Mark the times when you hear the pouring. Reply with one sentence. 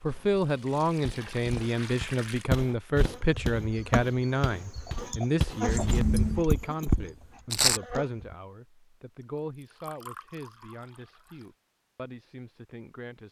You can hear the pouring from 0.1 to 2.5 s, from 5.7 to 6.5 s and from 9.6 to 11.4 s.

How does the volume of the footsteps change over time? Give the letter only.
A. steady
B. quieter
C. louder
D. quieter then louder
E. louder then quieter
D.